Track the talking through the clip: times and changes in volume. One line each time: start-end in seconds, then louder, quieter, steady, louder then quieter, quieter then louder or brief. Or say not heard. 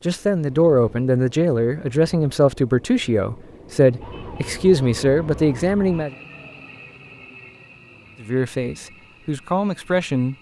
0.1-6.1 steady
8.2-10.3 brief.